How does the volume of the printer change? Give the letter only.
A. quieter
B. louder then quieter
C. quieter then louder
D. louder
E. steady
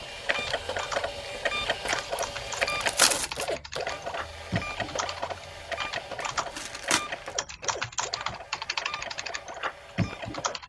A.